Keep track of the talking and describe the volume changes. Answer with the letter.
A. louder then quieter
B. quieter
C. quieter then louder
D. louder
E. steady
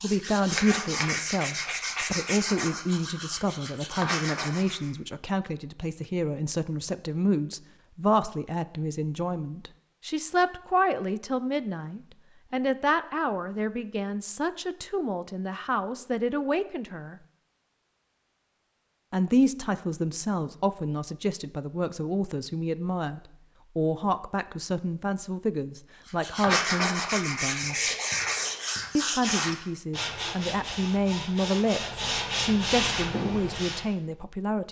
E.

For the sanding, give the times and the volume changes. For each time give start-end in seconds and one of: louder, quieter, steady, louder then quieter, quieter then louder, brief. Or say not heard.
0.0-4.9 quieter then louder
26.1-33.9 quieter then louder.